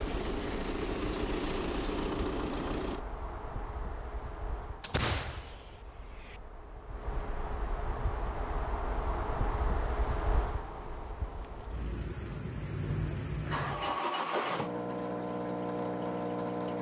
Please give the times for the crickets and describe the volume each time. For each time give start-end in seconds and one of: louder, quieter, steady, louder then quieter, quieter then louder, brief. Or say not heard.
0.0-14.0 louder.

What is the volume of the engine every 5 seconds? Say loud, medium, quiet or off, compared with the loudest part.
loud, off, loud, loud.